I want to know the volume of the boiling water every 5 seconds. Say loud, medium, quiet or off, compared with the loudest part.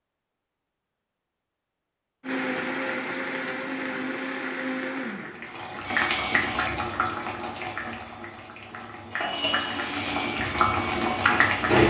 off, medium, loud.